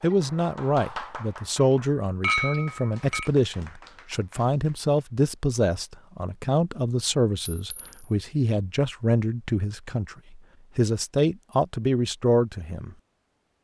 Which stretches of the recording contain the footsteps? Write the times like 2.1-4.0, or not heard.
not heard.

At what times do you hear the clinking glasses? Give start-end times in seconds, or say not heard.
2.2-3.3, 7.5-8.0.